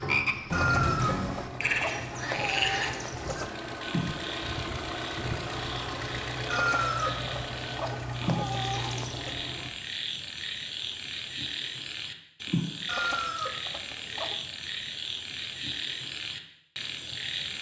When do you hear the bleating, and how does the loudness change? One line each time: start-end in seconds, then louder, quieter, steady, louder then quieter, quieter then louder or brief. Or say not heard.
not heard.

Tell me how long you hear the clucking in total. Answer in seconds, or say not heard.
7 s.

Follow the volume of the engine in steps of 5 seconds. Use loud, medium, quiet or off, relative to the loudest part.
loud, loud, off, off.